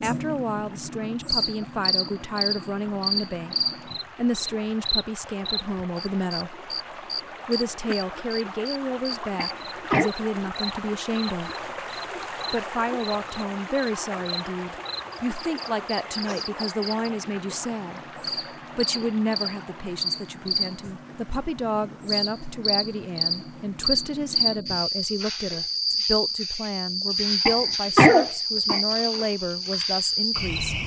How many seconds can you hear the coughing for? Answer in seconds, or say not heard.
2 s.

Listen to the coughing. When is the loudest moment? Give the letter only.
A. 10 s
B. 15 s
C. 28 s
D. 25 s
C.